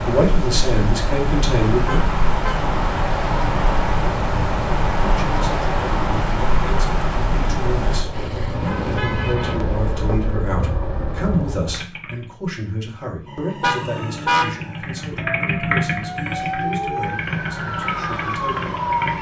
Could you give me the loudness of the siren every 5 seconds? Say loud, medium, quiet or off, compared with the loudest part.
off, off, medium, loud.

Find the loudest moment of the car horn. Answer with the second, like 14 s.
14 s.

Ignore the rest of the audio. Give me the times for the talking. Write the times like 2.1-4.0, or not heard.
0.1-2.0, 5.0-18.8.